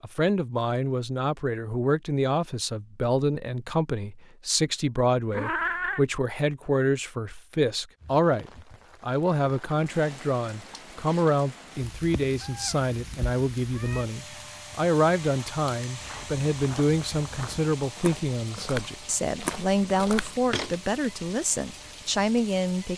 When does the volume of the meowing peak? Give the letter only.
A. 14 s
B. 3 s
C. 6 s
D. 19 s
C.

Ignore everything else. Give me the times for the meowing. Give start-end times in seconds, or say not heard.
5.3-6.0, 11.8-14.1.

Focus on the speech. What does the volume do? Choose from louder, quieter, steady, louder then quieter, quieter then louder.
steady.